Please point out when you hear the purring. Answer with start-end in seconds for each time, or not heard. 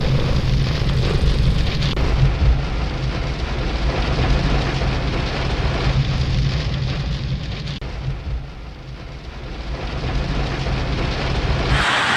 0.0-2.3.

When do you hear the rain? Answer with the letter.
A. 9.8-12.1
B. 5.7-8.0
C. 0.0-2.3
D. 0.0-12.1
D.